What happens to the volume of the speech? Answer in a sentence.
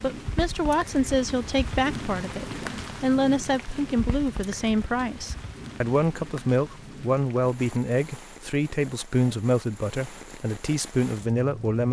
The volume of the speech stays about the same.